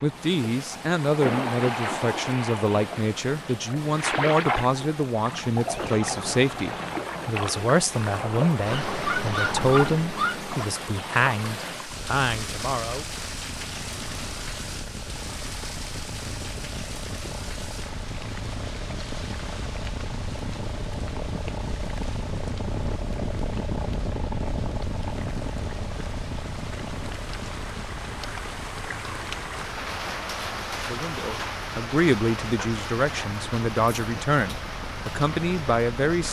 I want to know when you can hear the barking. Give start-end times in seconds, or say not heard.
8.7-10.7.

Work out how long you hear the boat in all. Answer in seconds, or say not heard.
36 s.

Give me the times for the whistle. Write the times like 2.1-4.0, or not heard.
not heard.